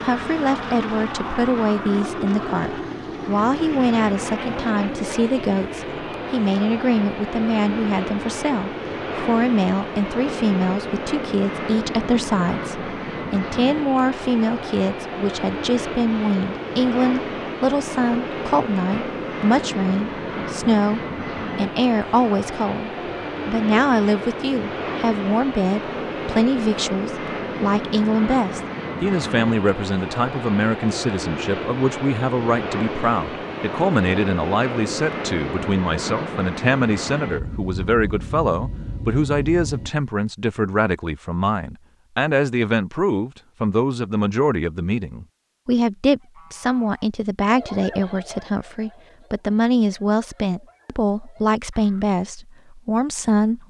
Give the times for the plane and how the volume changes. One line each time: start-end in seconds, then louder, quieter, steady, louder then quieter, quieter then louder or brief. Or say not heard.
0.0-39.9 steady.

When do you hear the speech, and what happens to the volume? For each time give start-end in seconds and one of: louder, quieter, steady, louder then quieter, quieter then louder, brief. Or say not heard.
0.0-53.6 steady.